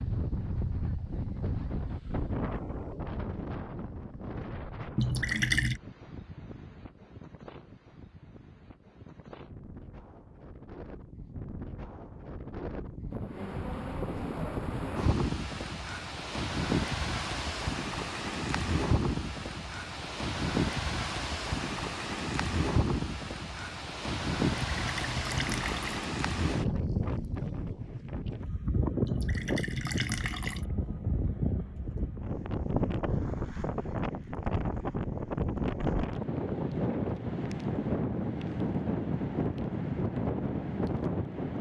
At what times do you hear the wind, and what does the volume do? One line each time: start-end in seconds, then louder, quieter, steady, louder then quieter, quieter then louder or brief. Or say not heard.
0.0-41.5 louder.